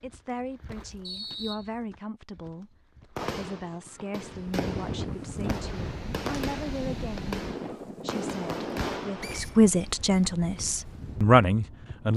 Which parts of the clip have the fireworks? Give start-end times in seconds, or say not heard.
3.1-9.7.